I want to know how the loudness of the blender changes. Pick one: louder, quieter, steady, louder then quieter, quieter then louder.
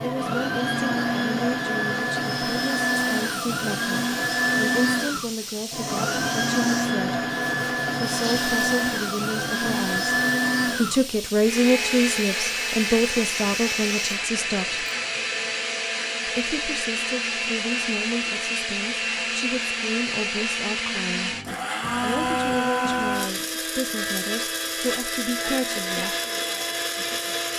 steady.